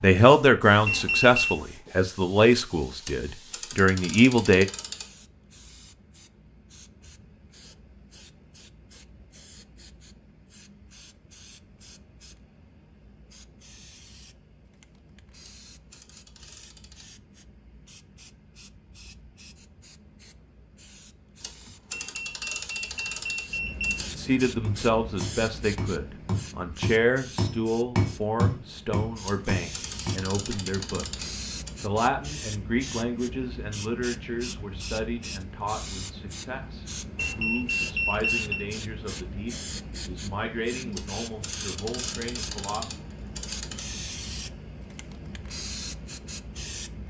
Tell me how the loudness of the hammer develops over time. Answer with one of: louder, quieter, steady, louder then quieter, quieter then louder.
louder then quieter.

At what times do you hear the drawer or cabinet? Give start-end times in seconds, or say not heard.
not heard.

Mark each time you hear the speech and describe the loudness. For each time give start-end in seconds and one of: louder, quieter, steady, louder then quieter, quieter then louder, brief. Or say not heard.
0.0-4.7 quieter then louder
24.1-42.9 quieter.